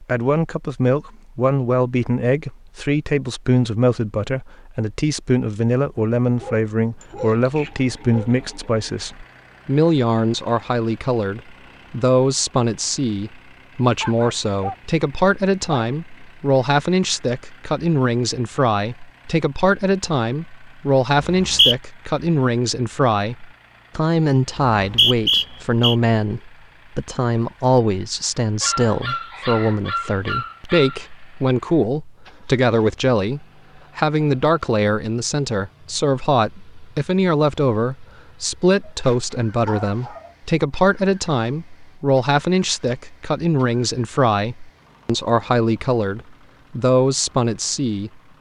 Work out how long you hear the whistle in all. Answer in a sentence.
You can hear the whistle for 2 seconds altogether.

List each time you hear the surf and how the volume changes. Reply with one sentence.
You can't hear the surf here.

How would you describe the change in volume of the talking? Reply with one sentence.
The loudness of the talking stays about the same.